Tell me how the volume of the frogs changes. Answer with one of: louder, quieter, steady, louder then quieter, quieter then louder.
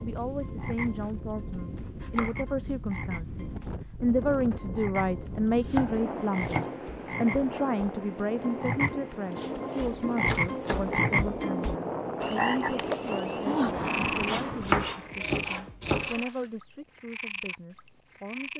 louder then quieter.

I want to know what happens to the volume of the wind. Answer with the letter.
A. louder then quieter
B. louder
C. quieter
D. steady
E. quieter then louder
B.